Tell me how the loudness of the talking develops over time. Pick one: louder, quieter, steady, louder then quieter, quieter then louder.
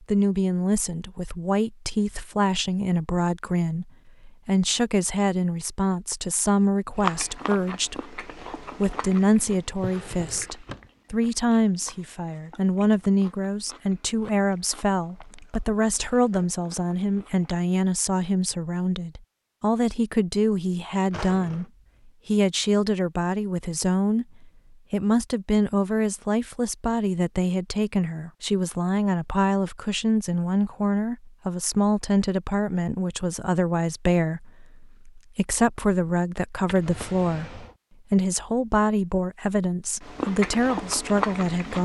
steady.